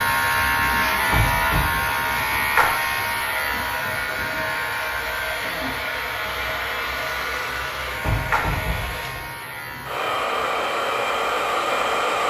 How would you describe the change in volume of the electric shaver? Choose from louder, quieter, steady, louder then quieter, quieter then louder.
quieter.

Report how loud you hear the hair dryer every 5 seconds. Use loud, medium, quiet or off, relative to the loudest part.
medium, medium, loud.